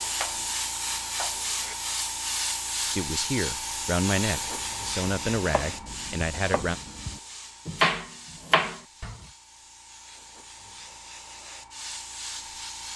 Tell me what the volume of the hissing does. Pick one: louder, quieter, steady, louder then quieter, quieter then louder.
quieter then louder.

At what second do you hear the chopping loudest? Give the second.
8 s.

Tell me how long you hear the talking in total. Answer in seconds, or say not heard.
4 s.